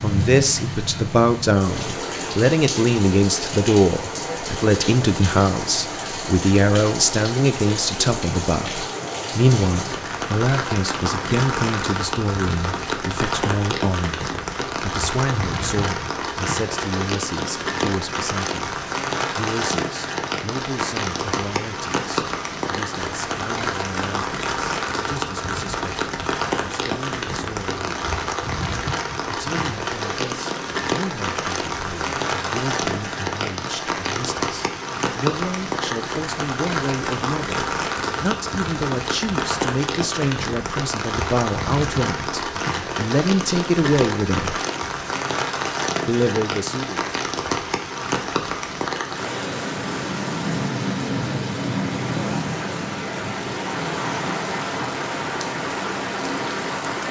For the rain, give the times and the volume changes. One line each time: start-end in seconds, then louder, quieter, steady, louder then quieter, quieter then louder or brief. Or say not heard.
0.0-57.0 steady.